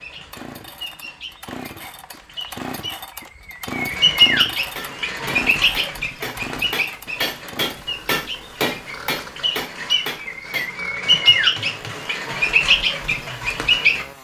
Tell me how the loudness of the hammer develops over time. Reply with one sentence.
The loudness of the hammer goes up, then down.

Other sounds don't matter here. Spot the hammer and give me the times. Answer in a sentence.
You can hear the hammer from 4.7 to 12.1 s.